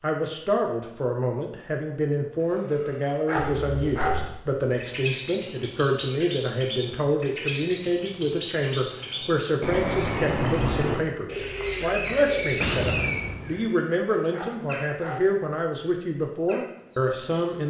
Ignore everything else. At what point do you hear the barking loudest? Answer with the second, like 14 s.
4 s.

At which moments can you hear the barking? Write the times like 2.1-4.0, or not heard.
2.4-4.2, 13.6-15.2.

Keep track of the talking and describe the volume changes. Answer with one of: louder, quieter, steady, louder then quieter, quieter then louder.
steady.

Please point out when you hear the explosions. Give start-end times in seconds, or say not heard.
12.6-13.7.